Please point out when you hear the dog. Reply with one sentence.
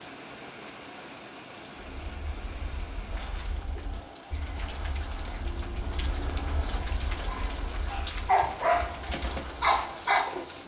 The dog can be heard from 7.2 to 10.6 s.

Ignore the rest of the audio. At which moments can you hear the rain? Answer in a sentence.
The rain can be heard from 0.0 to 10.6 s.